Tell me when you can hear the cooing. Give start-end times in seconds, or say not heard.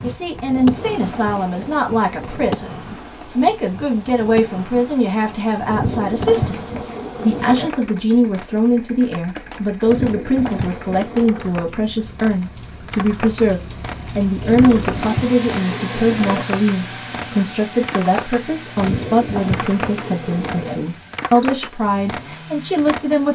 0.5-2.5, 5.7-7.7, 9.8-11.6, 14.4-16.4, 18.8-20.8.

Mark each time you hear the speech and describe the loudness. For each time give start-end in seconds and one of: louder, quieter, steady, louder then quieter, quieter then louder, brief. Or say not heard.
0.0-23.3 steady.